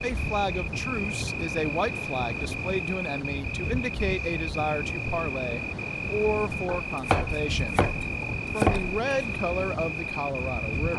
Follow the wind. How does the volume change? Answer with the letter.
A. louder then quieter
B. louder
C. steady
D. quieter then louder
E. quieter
C.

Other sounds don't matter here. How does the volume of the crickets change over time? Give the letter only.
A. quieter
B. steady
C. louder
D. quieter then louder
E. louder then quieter
B.